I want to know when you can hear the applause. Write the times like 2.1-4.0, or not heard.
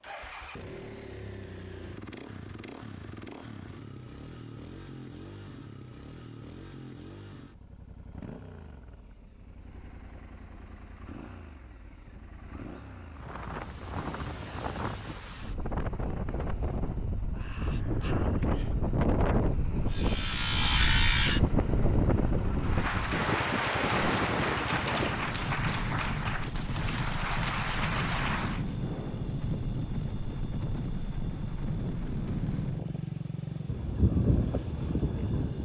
22.6-28.6.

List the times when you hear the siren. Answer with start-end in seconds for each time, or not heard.
not heard.